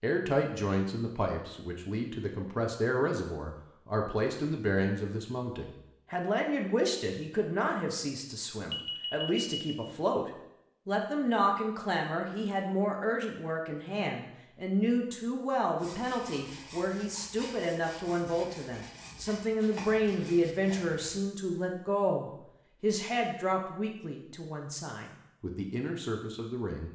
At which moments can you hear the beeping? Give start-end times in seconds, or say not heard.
8.7-9.8.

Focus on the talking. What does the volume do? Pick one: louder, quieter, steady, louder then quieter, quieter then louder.
steady.